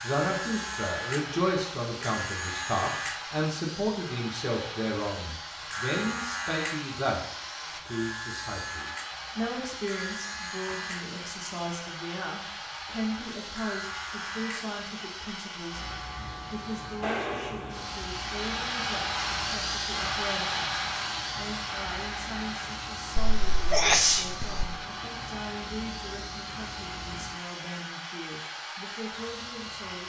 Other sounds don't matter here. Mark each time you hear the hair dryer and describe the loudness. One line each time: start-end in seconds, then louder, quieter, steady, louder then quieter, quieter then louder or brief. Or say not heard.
0.0-30.0 louder then quieter.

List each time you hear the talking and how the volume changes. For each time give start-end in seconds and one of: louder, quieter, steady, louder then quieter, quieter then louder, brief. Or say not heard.
0.0-30.0 quieter.